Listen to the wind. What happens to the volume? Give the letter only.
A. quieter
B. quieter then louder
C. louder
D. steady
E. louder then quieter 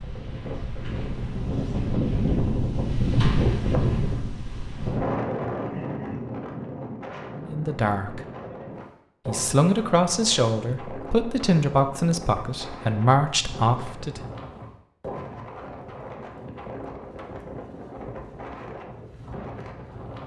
A.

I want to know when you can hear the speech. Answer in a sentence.
The speech can be heard from 7.3 to 8.2 s and from 9.2 to 14.2 s.